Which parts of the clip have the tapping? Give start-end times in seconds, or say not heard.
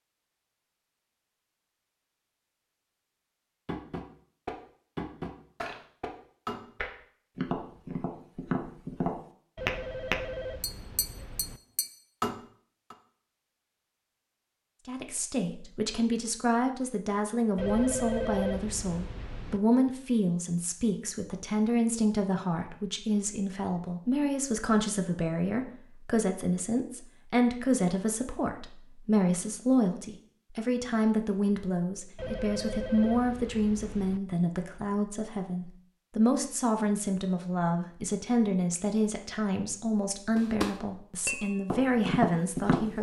3.6-12.9, 40.4-42.9.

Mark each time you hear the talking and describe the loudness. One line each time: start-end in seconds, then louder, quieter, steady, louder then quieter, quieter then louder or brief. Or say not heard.
14.8-42.9 steady.